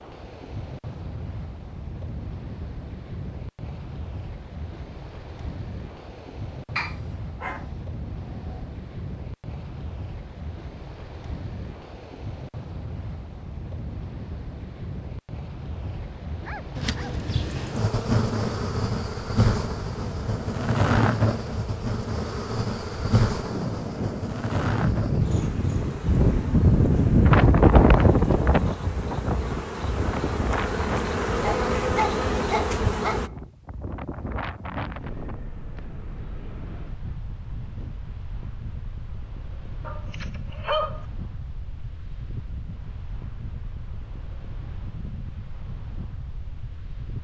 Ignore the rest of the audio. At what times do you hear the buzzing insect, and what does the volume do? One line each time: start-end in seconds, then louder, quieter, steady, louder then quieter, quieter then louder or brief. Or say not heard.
16.8-33.3 quieter then louder.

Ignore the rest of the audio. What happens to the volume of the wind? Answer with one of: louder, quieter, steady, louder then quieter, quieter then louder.
louder then quieter.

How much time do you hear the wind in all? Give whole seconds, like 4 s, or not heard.
47 s.